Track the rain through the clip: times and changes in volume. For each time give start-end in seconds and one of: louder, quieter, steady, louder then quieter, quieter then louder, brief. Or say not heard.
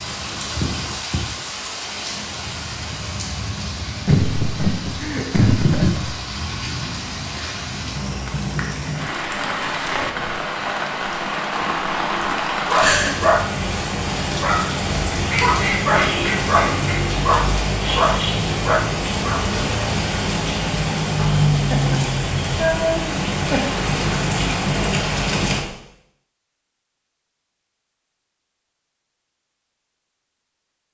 0.0-25.6 louder.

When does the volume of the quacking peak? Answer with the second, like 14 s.
16 s.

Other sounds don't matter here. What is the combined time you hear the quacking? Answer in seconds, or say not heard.
2 s.